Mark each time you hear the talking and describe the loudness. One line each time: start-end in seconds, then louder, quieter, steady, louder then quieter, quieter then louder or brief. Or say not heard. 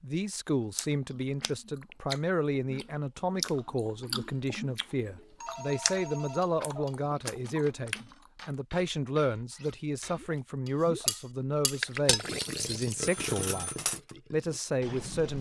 0.0-13.7 steady
14.3-15.3 brief.